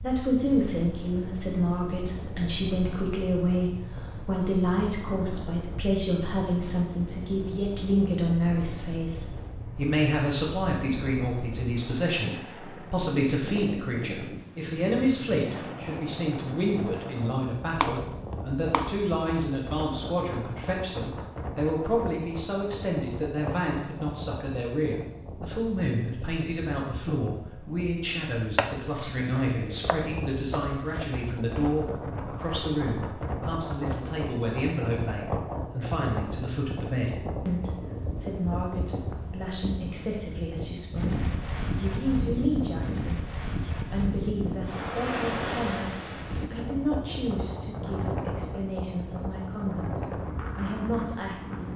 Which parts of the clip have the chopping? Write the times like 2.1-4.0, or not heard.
17.8-19.4, 28.6-31.1.